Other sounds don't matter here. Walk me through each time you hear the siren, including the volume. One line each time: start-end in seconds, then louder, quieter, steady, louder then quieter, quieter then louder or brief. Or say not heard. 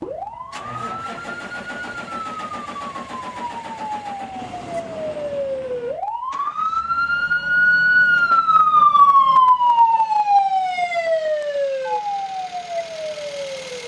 0.0-13.8 louder then quieter.